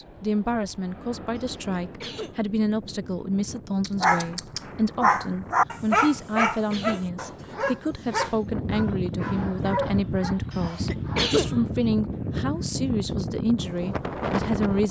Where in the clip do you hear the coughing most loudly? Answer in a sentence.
The volume of the coughing peaks at 11 seconds.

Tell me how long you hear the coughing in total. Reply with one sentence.
The coughing can be heard for 3 seconds in total.